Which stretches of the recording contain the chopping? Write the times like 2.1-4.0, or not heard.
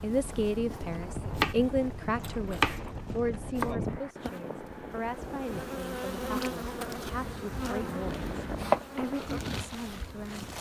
1.3-3.8, 7.1-8.8.